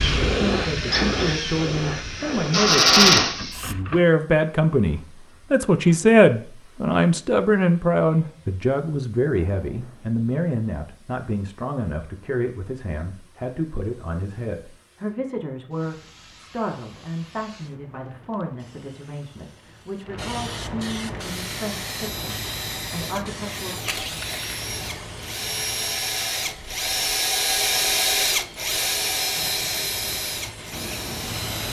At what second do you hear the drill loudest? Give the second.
3 s.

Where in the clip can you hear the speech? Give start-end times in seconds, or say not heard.
0.0-23.8.